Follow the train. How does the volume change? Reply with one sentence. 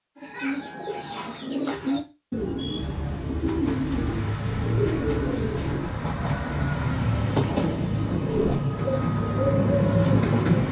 The loudness of the train goes up.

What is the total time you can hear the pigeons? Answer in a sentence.
You can hear the pigeons for 8 seconds altogether.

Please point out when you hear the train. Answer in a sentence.
You can hear the train from 2.8 to 10.6 s.